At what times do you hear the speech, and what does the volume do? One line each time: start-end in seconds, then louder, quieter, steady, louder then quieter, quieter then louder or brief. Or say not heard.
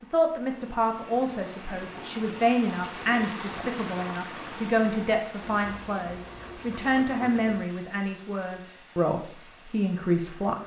0.0-10.6 steady.